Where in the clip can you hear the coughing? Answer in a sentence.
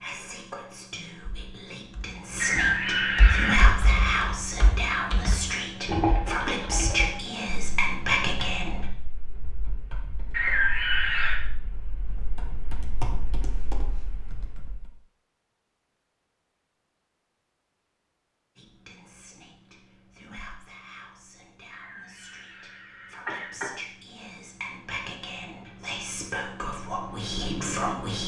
The coughing can be heard from 2.4 to 3.6 s, from 10.3 to 11.4 s and from 21.7 to 23.7 s.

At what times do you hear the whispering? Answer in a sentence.
The whispering can be heard from 0.0 to 8.8 s and from 18.6 to 28.2 s.